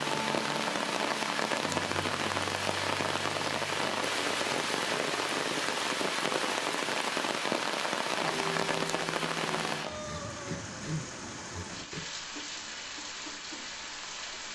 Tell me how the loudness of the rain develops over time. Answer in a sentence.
The volume of the rain goes down.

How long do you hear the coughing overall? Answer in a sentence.
You can hear the coughing for 2 seconds altogether.